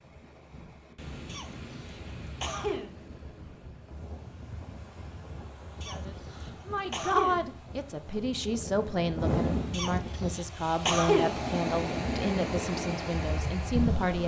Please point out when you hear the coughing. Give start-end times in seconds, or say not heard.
1.2-3.0, 5.8-7.5, 9.7-11.4.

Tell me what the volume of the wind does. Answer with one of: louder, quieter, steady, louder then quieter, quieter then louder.
louder.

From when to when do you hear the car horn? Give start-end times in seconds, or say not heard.
not heard.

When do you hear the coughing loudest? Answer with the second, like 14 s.
11 s.